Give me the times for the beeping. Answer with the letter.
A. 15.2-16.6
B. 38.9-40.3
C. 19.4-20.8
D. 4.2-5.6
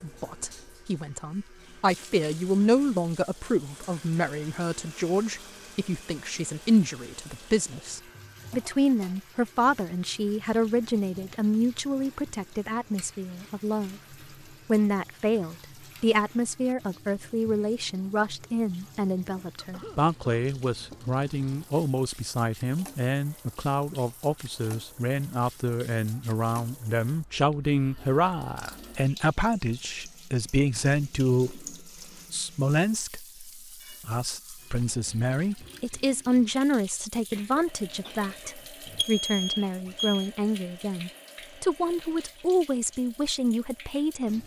B.